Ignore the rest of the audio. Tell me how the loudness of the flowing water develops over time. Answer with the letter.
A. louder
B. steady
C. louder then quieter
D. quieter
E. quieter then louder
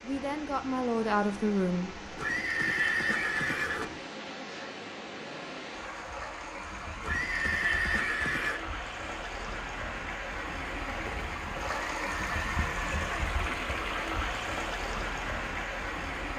A.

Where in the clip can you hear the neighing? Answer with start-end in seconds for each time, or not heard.
2.1-3.9, 7.0-8.6, 11.9-13.2.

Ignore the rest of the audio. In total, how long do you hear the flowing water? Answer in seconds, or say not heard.
16 s.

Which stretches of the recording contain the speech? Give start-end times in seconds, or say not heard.
0.0-1.9.